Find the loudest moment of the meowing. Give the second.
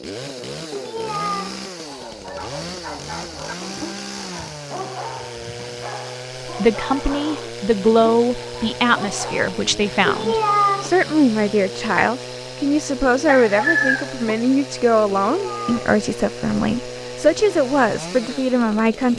11 s.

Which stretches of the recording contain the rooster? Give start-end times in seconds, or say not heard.
13.2-14.3.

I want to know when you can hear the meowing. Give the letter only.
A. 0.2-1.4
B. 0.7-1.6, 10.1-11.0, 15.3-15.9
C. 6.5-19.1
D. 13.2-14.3
B.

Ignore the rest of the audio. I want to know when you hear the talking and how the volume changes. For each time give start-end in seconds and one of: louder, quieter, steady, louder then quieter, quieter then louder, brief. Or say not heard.
6.5-19.1 steady.